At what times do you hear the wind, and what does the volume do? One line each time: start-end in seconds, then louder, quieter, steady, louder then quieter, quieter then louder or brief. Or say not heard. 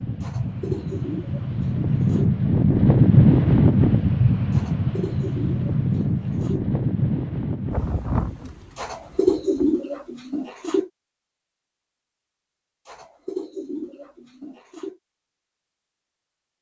0.0-9.7 louder then quieter.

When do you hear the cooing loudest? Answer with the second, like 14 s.
9 s.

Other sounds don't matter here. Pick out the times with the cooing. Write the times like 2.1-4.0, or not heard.
0.2-2.4, 4.5-6.7, 8.8-10.9, 12.8-14.9.